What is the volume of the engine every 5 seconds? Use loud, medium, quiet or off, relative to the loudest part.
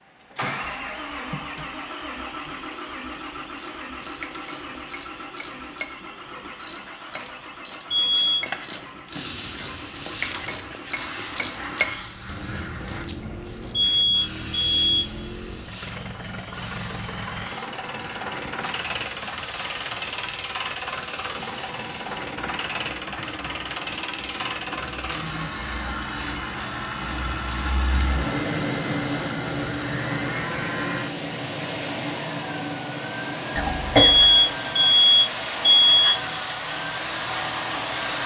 loud, medium, medium, loud, loud, loud, loud, loud.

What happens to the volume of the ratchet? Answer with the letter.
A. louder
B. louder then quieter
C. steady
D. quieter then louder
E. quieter
A.